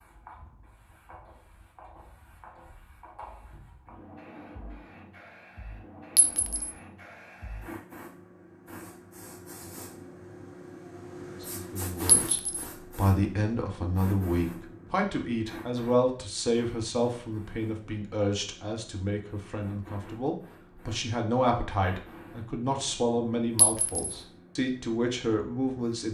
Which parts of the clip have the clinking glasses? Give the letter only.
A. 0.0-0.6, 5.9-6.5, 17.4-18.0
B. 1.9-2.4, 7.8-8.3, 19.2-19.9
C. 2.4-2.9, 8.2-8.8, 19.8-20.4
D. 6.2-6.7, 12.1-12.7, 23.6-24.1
D.